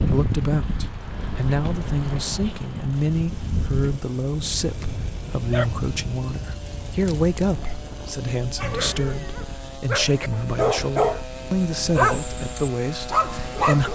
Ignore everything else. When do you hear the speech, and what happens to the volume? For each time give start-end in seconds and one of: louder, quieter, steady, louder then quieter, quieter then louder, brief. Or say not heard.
0.0-13.9 steady.